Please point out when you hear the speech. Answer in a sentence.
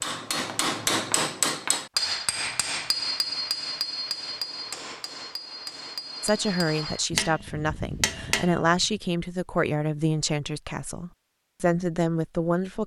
You can hear the speech from 6.2 to 12.8 s.